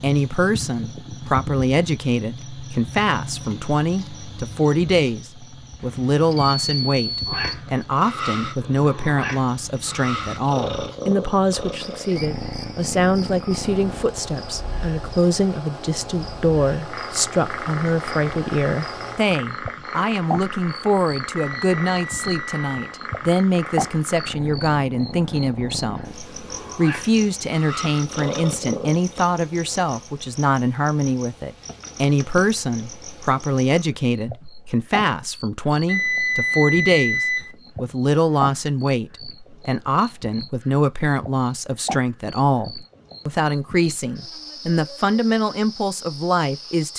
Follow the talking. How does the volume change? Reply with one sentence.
The loudness of the talking stays about the same.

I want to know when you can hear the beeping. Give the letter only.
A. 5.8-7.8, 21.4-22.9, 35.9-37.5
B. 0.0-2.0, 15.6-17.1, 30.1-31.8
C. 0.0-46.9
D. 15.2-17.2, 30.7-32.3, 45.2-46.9
A.